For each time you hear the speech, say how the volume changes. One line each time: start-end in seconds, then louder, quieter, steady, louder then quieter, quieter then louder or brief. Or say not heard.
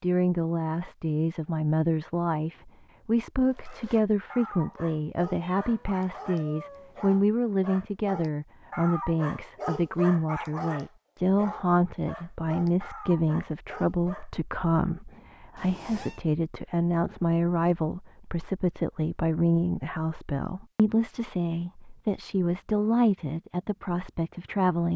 0.0-24.9 steady.